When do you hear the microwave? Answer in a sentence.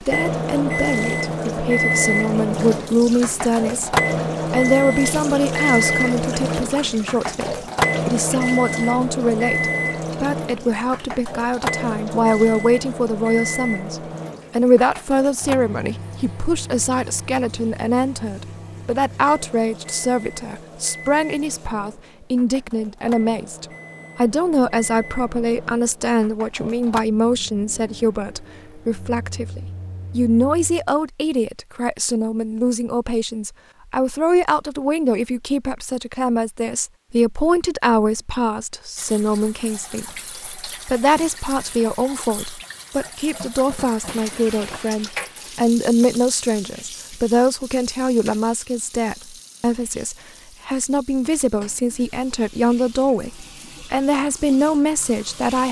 The microwave can be heard from 0.0 to 30.9 s.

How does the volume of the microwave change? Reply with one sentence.
The loudness of the microwave goes down.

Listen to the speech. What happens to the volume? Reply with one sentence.
The volume of the speech stays about the same.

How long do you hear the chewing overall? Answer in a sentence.
You can't hear the chewing here.